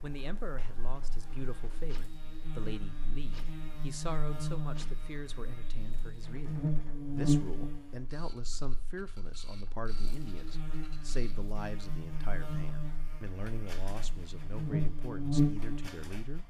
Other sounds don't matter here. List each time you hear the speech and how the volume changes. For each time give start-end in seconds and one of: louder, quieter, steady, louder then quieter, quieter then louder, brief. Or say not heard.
0.0-16.4 steady.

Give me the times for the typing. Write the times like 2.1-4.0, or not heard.
not heard.